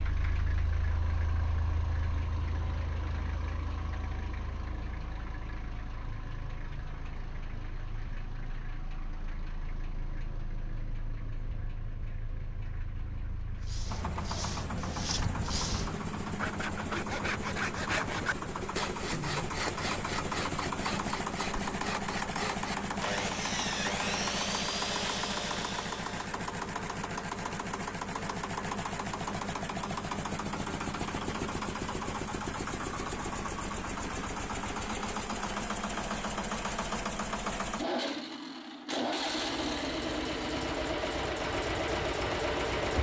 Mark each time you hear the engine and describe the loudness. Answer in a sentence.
You can hear the engine from 0.0 to 42.9 s, getting louder.